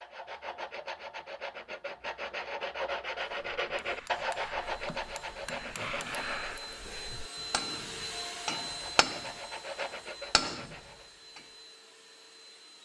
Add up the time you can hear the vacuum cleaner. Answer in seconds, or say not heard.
8 s.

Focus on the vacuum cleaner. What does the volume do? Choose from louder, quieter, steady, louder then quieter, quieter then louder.
louder then quieter.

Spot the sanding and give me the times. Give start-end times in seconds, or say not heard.
0.0-6.8, 8.7-11.1.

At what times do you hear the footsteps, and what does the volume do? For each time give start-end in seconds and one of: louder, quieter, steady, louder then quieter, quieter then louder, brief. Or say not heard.
not heard.